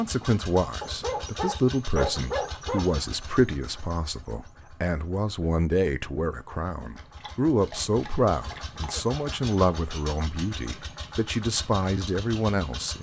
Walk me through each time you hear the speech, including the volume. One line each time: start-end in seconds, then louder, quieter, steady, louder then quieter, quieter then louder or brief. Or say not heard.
0.0-12.9 steady.